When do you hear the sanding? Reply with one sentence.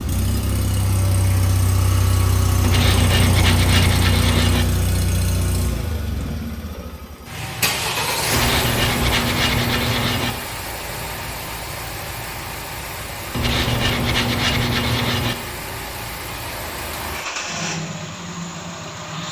The sanding can be heard from 2.6 to 4.7 s, from 8.3 to 10.3 s and from 13.3 to 15.3 s.